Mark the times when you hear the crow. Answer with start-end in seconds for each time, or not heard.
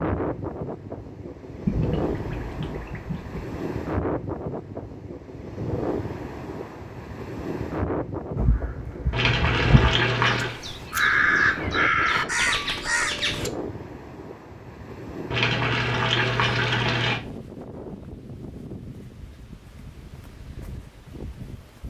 8.3-13.5.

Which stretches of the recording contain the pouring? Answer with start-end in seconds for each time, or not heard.
1.6-3.4, 9.1-10.6, 15.3-17.2.